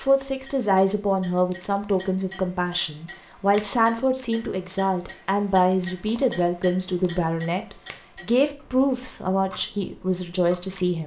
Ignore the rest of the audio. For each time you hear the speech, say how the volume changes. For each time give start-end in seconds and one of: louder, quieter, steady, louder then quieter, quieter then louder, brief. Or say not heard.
0.0-11.0 steady.